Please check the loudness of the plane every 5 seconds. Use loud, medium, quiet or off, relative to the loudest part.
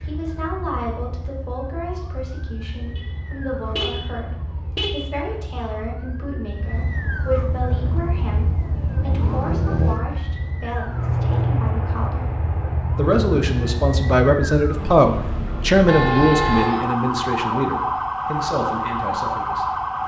off, loud, loud, off.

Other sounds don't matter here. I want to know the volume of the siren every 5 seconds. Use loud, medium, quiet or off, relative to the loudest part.
quiet, medium, medium, loud.